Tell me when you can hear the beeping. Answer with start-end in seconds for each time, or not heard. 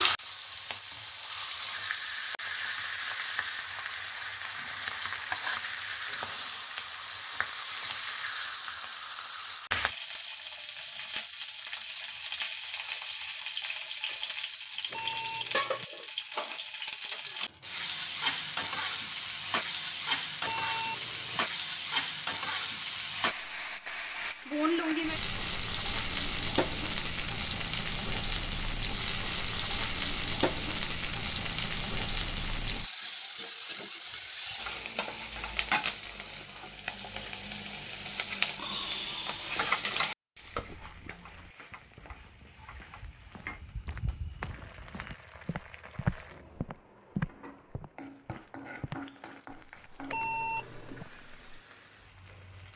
14.9-15.8, 20.4-21.4, 50.0-51.0.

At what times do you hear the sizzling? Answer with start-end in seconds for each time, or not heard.
0.0-52.7.